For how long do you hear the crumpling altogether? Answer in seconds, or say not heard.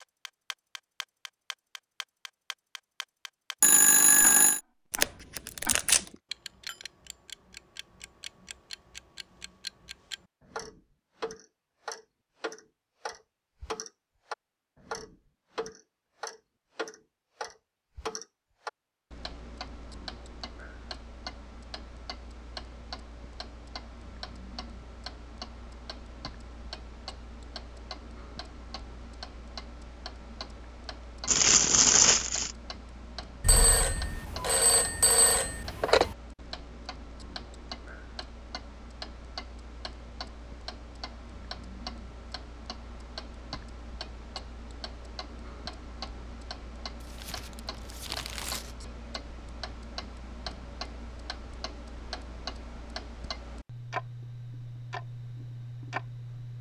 4 s.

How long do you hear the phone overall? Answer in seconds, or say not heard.
4 s.